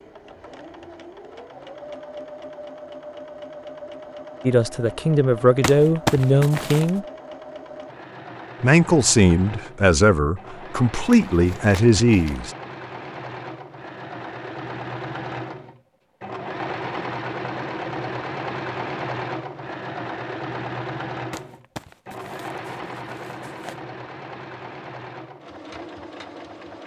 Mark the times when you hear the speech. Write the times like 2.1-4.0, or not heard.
4.5-7.0, 8.6-12.5.